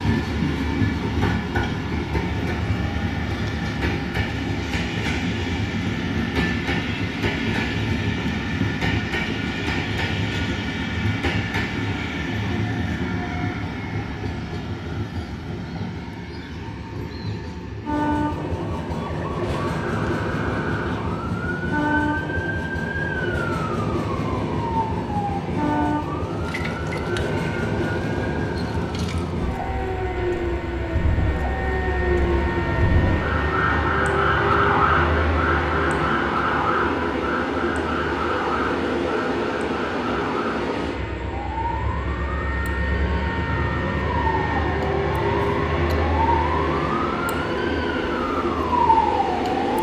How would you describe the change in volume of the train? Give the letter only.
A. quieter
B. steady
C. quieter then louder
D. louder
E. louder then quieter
B.